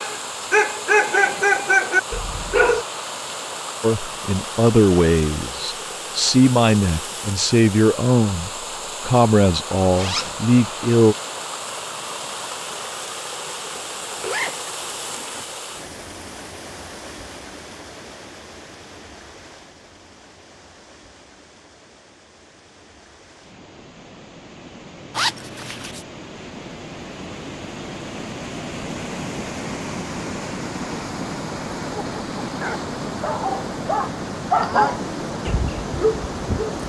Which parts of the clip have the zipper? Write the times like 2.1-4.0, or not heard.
9.9-10.4, 13.7-15.5, 25.1-26.1.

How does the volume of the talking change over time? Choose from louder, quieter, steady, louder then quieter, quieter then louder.
steady.